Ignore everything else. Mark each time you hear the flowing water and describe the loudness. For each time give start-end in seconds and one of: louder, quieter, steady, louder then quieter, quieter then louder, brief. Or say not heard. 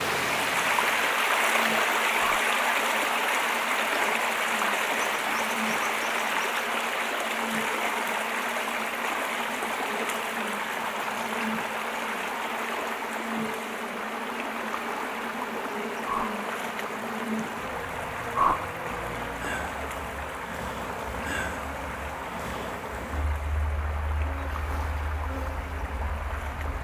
0.0-26.7 quieter.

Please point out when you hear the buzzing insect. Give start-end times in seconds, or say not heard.
0.2-26.7.